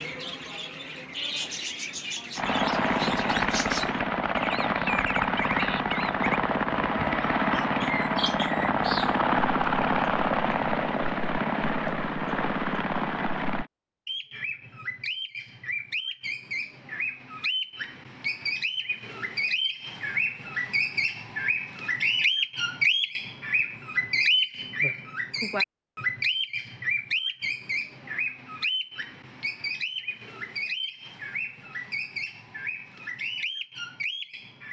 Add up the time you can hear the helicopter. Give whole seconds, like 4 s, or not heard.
11 s.